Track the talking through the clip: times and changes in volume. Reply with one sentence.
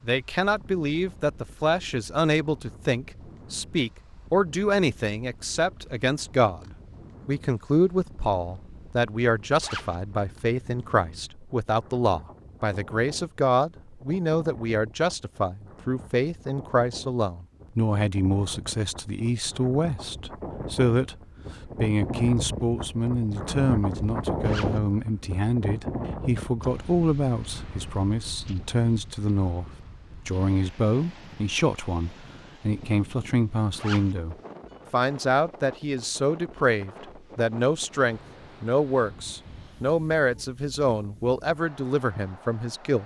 The talking can be heard from 0.0 to 43.0 s, at a steady volume.